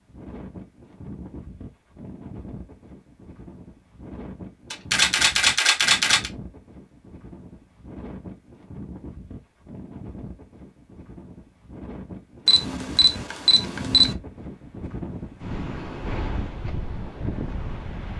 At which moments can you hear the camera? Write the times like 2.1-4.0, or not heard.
4.7-6.3, 12.4-14.1.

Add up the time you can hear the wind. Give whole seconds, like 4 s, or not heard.
18 s.